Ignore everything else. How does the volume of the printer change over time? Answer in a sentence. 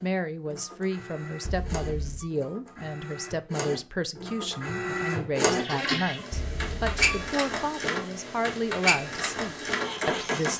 The volume of the printer goes up.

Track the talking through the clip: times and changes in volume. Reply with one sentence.
You can hear the talking from 0.0 to 10.5 s, at a steady volume.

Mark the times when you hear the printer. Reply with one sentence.
You can hear the printer from 0.0 to 10.5 s.